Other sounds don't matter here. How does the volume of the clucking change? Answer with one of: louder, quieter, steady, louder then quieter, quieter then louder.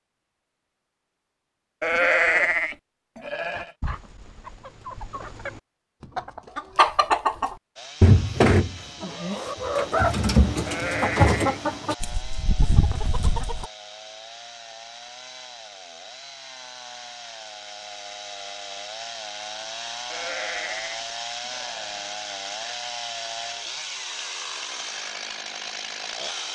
louder then quieter.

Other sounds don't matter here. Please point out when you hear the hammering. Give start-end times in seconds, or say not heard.
not heard.